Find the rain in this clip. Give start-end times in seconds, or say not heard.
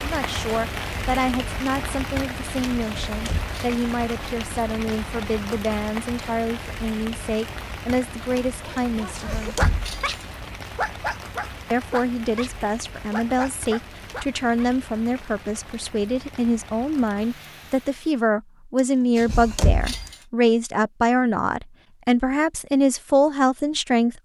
0.0-18.2.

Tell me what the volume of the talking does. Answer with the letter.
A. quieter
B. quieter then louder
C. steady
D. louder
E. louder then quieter
D.